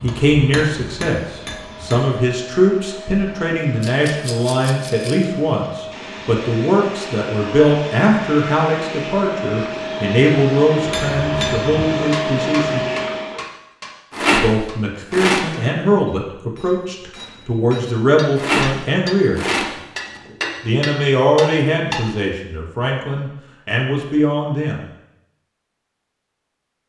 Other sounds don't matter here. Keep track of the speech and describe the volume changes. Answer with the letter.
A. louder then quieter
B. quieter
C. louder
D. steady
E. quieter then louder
D.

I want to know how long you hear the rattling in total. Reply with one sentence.
You can hear the rattling for 5 seconds altogether.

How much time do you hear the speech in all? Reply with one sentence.
You can hear the speech for 22 seconds altogether.